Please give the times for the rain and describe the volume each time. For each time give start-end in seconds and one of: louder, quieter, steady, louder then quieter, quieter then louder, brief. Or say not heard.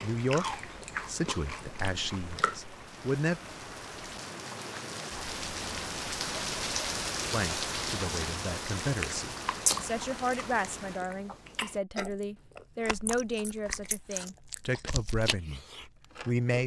0.0-11.1 louder then quieter.